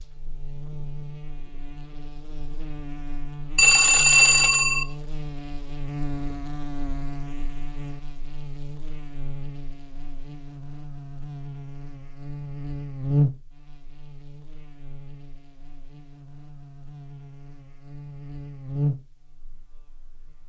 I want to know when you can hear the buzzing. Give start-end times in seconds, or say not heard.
0.0-20.4.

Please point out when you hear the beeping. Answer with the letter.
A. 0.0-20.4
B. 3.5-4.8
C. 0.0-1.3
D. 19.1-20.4
B.